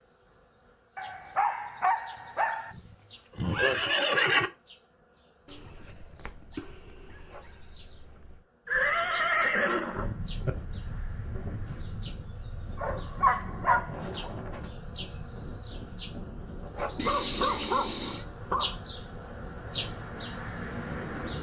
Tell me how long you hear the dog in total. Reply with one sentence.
You can hear the dog for 8 seconds altogether.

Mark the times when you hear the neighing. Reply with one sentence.
You can hear the neighing from 2.8 to 4.5 s, from 8.7 to 10.6 s and from 16.9 to 18.2 s.